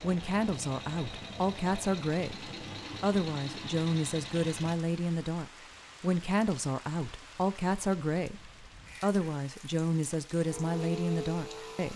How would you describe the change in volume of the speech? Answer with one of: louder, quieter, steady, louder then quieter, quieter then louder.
steady.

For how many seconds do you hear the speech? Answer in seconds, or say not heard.
12 s.